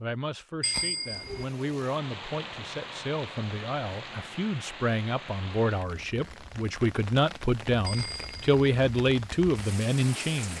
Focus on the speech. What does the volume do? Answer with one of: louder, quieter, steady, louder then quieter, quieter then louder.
louder.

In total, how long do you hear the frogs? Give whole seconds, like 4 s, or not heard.
not heard.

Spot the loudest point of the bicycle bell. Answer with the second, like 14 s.
1 s.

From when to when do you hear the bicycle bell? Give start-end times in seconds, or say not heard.
0.6-1.4, 7.8-8.7.